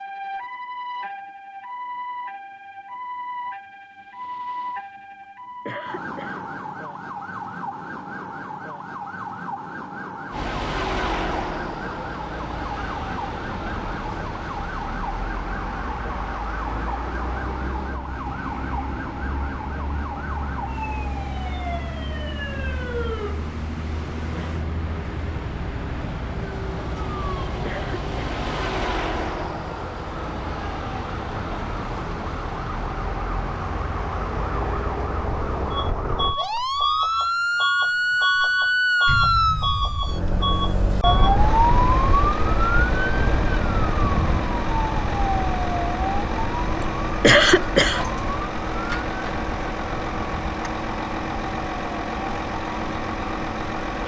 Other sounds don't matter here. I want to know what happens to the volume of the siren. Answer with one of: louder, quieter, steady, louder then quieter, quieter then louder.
louder.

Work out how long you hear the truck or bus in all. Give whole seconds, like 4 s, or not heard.
44 s.